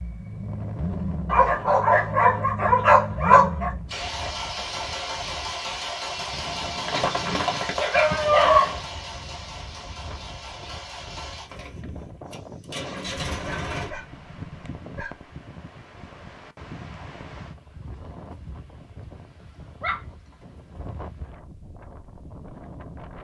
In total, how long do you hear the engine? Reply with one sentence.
The engine can be heard for 14 seconds in total.